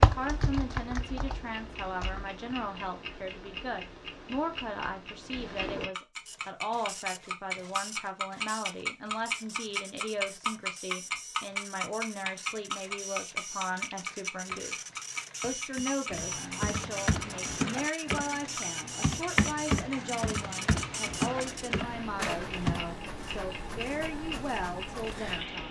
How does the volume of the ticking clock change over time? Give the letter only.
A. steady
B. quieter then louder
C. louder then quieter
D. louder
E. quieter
C.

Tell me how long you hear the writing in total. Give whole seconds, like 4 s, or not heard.
not heard.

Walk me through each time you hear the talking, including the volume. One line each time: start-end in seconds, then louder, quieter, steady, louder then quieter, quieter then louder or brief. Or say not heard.
0.0-25.6 steady.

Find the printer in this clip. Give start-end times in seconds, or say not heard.
6.2-25.6.